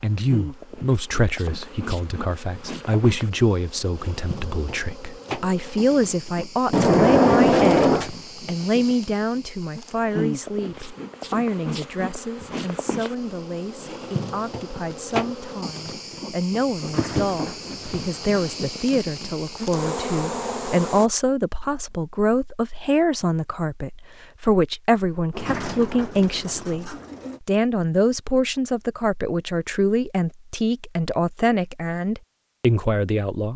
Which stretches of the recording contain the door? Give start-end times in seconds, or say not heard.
6.7-8.1, 16.8-18.7, 25.3-27.4.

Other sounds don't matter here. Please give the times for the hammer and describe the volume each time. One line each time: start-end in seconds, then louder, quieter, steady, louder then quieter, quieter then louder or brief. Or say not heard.
not heard.